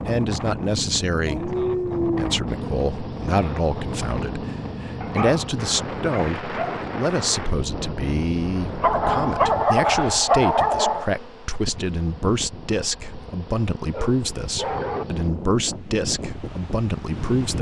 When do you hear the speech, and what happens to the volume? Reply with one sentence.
The speech can be heard from 0.1 to 17.5 s, at a steady volume.